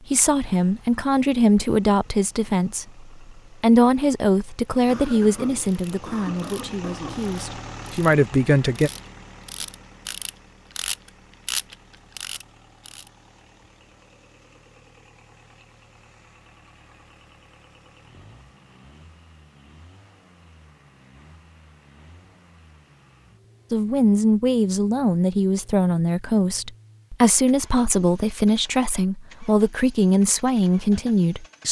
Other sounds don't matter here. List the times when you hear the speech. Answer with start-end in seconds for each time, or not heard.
0.1-8.9, 23.7-31.6.